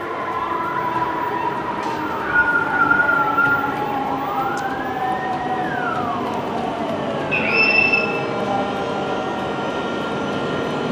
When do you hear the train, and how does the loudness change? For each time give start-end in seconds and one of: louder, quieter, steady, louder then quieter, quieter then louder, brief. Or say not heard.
0.0-10.8 steady.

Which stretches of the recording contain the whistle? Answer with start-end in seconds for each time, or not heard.
1.8-3.7, 7.3-8.1.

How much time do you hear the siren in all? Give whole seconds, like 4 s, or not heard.
11 s.